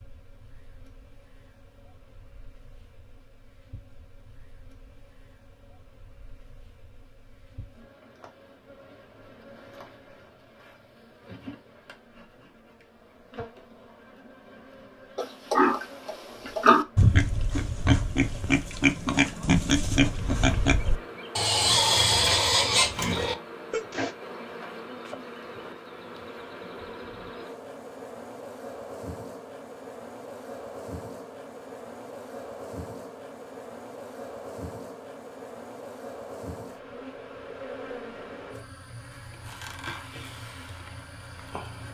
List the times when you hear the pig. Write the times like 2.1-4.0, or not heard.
15.2-24.1.